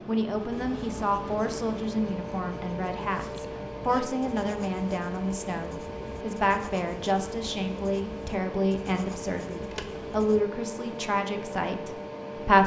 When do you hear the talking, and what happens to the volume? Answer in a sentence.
You can hear the talking from 0.1 to 12.6 s, at a steady volume.